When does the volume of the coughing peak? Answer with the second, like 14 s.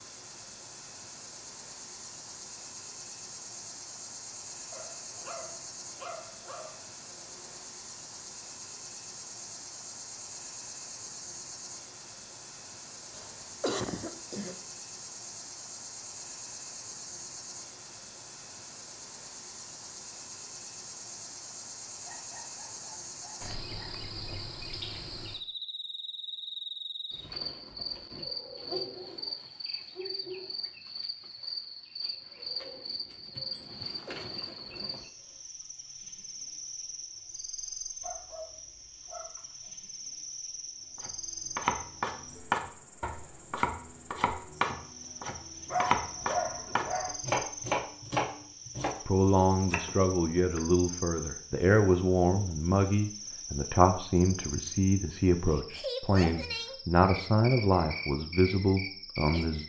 14 s.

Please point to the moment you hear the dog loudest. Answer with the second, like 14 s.
46 s.